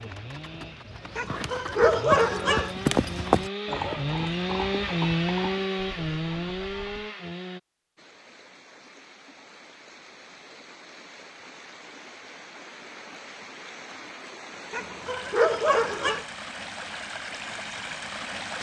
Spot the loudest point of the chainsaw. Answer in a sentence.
The volume of the chainsaw peaks at 5 seconds.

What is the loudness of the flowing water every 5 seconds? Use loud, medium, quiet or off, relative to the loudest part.
off, quiet, medium, loud.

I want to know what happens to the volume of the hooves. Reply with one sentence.
The loudness of the hooves goes up, then down.